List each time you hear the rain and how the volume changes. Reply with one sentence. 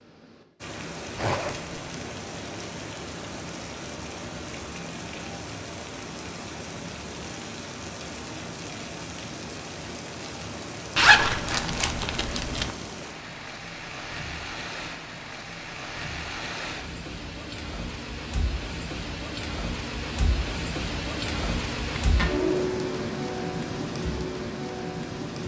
You can hear the rain from 0.0 to 25.4 s, getting louder.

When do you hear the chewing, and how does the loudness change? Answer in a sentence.
You can't hear the chewing here.